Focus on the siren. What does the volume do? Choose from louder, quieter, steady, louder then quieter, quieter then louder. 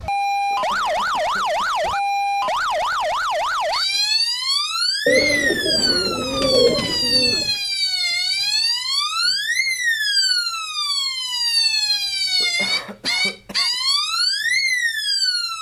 steady.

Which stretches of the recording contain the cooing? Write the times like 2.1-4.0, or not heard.
5.0-7.5.